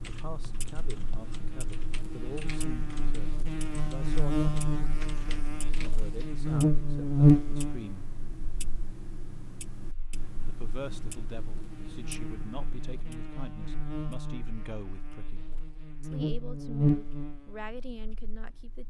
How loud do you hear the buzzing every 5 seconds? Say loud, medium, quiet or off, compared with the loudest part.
medium, loud, quiet, medium.